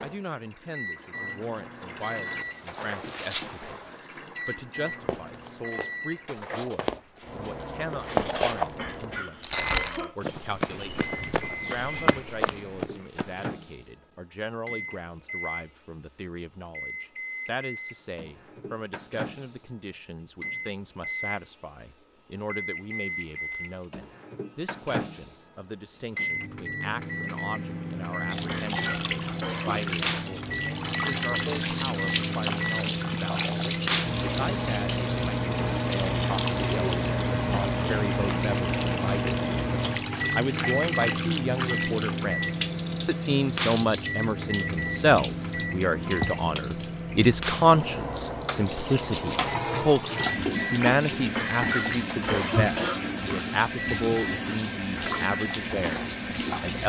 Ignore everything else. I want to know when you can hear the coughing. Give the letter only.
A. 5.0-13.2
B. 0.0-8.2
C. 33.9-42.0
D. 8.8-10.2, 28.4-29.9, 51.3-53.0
D.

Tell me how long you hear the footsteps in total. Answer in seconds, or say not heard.
8 s.